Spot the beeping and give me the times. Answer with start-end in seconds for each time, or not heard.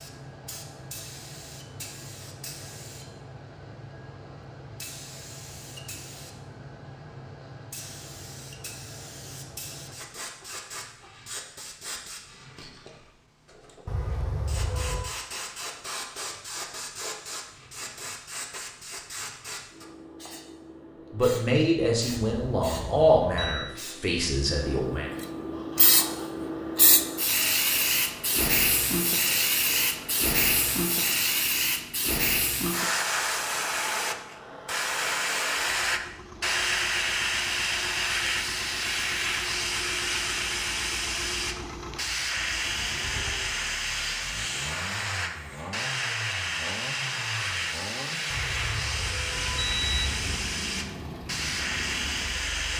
13.8-15.2, 22.3-23.8, 48.3-50.5.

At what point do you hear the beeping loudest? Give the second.
50 s.